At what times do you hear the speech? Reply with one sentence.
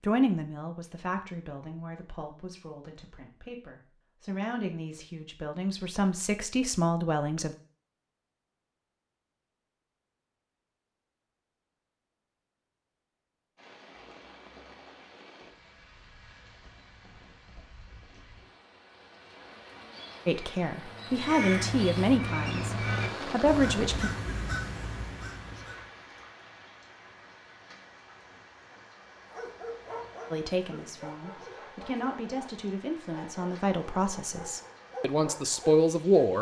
The speech can be heard from 0.0 to 7.5 s, from 20.2 to 24.1 s and from 30.3 to 36.3 s.